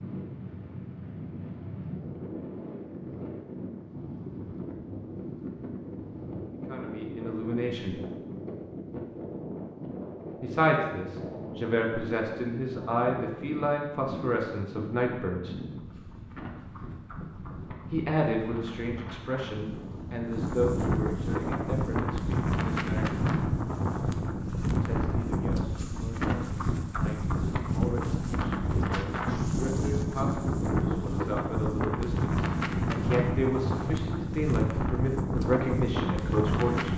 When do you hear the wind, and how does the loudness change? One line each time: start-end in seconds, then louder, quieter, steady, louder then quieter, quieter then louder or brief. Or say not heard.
0.0-36.9 louder.